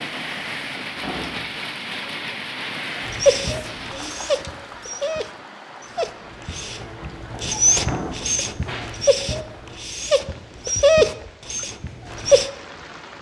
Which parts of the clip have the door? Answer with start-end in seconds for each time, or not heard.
0.9-1.5, 7.8-8.4.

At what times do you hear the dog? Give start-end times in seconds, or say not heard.
3.0-12.5.